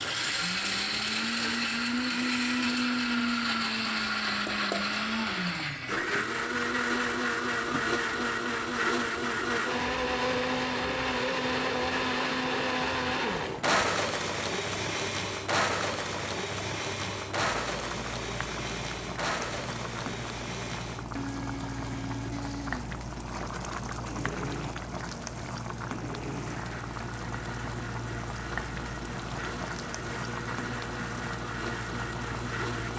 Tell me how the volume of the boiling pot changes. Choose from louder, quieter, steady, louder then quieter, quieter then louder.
louder.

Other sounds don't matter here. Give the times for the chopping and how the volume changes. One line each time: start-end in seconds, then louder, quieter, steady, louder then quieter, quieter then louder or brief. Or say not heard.
not heard.